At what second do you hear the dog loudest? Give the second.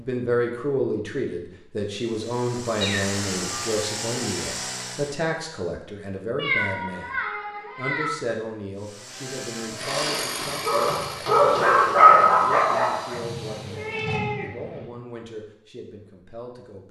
12 s.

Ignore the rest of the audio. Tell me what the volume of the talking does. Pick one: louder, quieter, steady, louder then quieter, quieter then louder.
quieter.